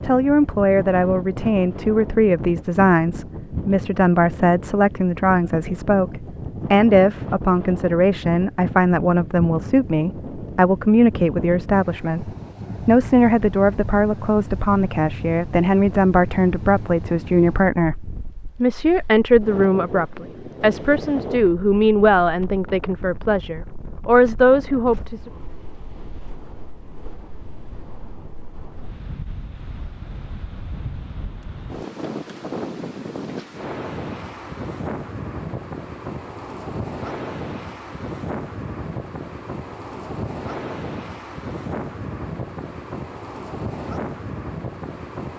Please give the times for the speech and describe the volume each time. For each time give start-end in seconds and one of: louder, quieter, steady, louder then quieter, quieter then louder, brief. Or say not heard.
0.0-25.3 steady.